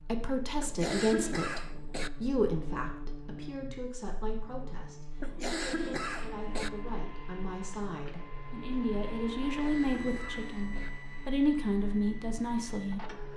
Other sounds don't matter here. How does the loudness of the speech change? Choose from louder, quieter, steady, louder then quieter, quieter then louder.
quieter then louder.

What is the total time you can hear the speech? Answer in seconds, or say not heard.
13 s.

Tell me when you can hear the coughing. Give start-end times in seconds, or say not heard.
0.6-2.1, 5.2-6.7, 9.5-10.9.